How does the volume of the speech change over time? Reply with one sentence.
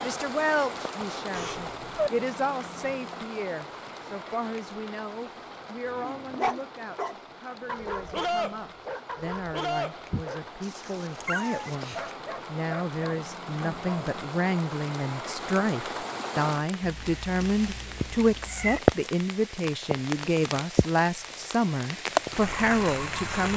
The loudness of the speech goes down, then up.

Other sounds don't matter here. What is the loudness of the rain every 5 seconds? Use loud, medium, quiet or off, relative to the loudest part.
medium, quiet, medium, loud, loud.